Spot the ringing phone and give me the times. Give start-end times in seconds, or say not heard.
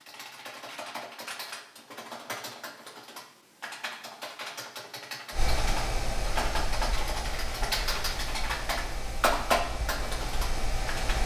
not heard.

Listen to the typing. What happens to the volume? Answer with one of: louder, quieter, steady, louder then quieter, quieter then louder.
louder.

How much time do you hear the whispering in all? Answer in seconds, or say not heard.
not heard.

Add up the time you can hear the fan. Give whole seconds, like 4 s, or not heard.
6 s.